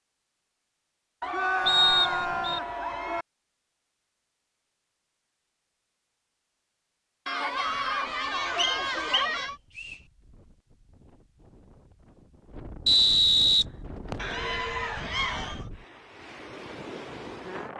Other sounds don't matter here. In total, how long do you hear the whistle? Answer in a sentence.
You can hear the whistle for 4 seconds altogether.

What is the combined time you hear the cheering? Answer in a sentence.
The cheering can be heard for 6 seconds in total.